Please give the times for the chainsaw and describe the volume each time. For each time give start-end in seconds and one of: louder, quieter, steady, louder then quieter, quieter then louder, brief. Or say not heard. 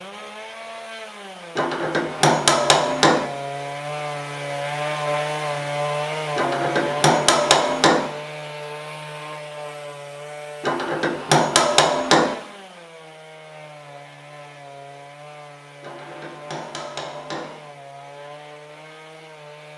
0.0-19.7 louder then quieter.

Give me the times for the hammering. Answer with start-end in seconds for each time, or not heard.
1.6-3.3, 6.3-8.1, 10.6-12.3, 15.8-17.6.